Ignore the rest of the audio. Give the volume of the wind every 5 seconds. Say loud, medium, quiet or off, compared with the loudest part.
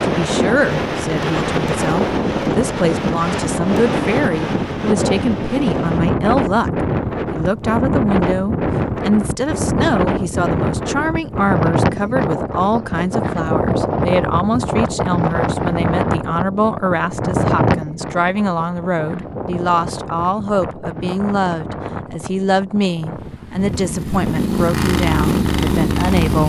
loud, loud, loud, loud, medium, off.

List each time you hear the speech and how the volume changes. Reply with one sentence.
You can hear the speech from 0.0 to 26.4 s, at a steady volume.